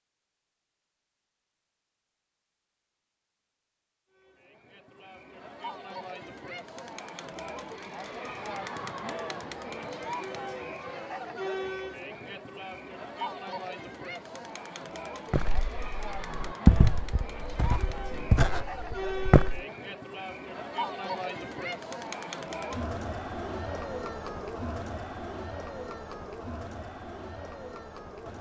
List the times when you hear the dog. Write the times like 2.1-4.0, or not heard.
not heard.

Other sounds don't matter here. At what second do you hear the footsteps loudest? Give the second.
17 s.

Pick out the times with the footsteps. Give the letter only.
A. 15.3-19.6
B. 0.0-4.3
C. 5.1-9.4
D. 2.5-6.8
A.